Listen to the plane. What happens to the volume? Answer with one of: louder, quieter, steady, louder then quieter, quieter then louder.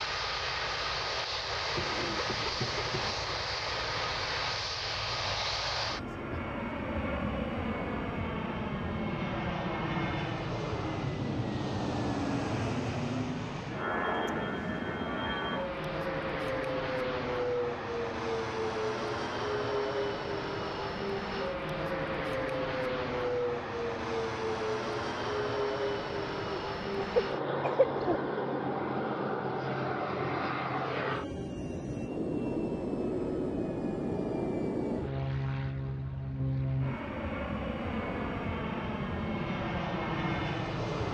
steady.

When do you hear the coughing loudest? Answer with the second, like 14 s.
28 s.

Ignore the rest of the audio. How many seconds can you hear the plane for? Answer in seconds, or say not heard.
41 s.